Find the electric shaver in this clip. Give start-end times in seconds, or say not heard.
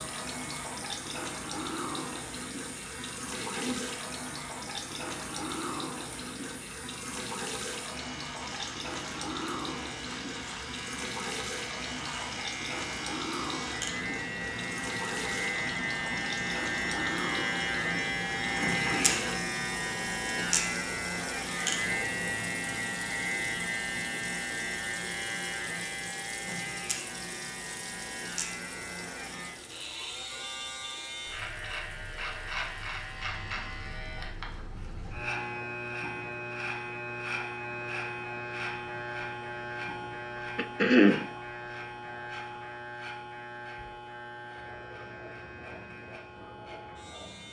0.0-47.4.